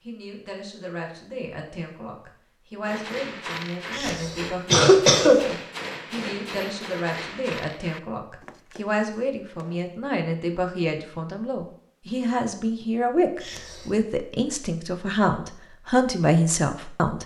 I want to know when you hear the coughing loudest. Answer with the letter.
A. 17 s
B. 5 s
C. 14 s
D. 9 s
B.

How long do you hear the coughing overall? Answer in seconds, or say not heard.
2 s.